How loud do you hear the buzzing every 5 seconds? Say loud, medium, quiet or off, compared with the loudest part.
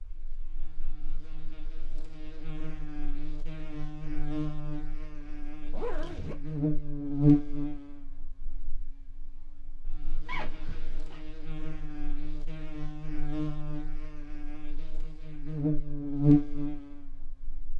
quiet, loud, quiet, loud.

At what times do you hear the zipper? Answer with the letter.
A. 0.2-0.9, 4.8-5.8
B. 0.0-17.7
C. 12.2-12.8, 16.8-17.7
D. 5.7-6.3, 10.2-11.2
D.